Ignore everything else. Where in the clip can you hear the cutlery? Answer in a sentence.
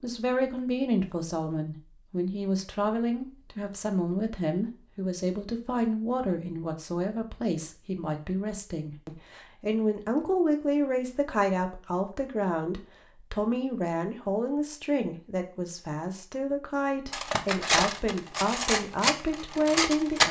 The cutlery can be heard from 17.1 to 20.2 s.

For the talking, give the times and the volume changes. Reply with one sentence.
You can hear the talking from 0.0 to 20.2 s, at a steady volume.